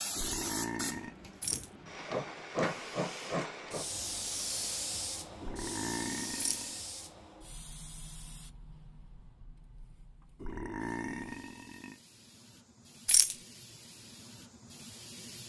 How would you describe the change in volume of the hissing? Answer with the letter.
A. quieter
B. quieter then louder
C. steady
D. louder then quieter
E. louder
B.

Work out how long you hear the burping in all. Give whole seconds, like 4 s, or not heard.
4 s.